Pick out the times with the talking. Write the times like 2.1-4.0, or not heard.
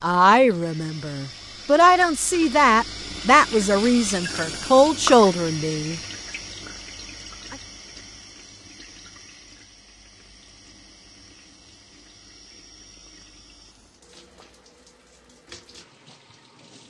0.0-6.0.